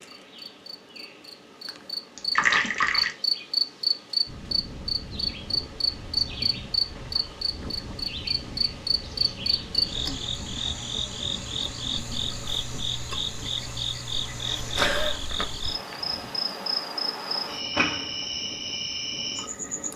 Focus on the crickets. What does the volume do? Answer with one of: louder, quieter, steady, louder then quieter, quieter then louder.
steady.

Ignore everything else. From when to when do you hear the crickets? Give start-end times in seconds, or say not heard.
0.0-19.9.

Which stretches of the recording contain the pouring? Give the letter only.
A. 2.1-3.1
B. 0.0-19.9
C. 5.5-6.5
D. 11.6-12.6
A.